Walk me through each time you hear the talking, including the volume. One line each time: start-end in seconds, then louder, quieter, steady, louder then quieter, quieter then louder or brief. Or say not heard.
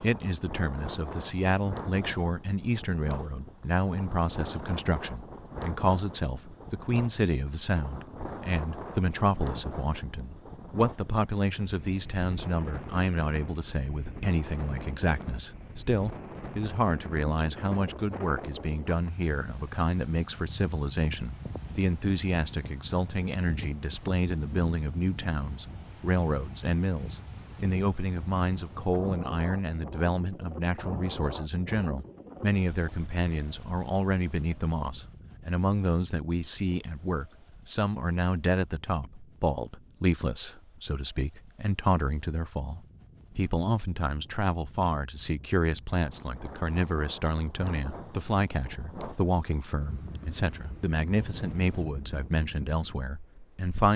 0.0-53.9 steady.